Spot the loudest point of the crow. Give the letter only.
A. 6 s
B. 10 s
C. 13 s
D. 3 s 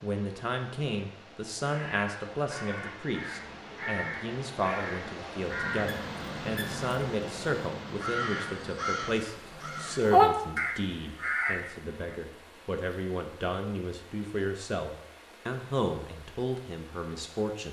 B.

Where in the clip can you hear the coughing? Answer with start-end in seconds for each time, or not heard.
not heard.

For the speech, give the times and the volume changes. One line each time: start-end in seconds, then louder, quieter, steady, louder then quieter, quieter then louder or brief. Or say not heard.
0.0-17.6 steady.